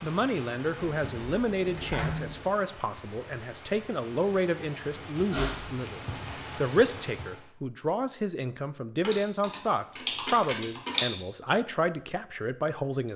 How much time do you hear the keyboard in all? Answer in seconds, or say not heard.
6 s.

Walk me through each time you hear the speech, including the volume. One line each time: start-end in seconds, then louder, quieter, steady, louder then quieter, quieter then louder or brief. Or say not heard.
0.0-13.1 steady.